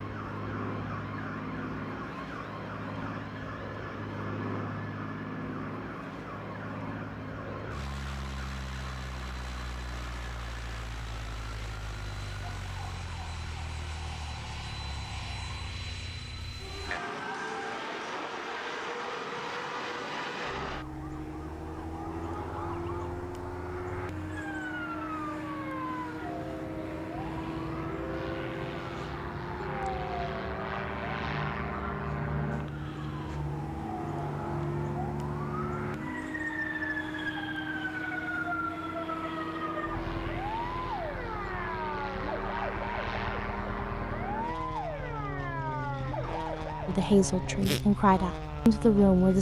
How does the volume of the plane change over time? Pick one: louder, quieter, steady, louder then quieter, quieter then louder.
steady.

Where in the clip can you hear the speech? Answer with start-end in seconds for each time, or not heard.
46.9-49.3.